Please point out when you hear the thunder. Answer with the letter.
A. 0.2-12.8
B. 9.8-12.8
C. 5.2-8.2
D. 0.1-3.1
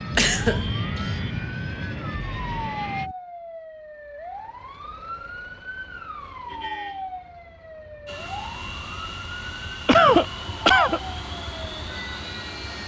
D.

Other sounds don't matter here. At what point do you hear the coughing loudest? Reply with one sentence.
The loudest moment of the coughing is at 10 seconds.